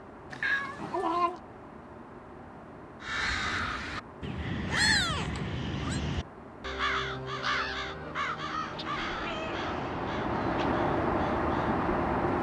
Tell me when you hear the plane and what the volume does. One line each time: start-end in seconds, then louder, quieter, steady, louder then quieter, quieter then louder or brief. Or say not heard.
0.0-12.3 louder.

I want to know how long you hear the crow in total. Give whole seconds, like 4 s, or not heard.
9 s.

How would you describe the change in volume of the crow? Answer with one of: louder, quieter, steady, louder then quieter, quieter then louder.
quieter.